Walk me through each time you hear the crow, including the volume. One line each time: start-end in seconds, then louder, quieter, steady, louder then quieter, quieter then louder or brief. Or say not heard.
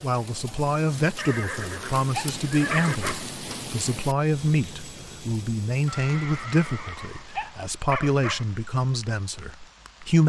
not heard.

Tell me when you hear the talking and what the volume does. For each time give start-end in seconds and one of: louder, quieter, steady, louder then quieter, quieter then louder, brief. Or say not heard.
0.0-10.2 steady.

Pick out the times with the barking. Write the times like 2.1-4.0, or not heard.
2.1-3.3, 7.3-8.5.